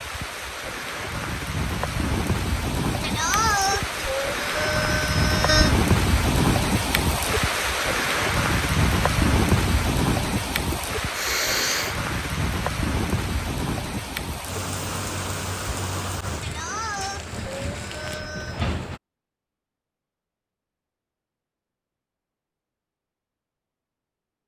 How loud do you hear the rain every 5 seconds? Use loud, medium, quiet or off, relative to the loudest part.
medium, loud, medium, medium, off.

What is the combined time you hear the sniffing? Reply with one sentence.
The sniffing can be heard for 6 seconds in total.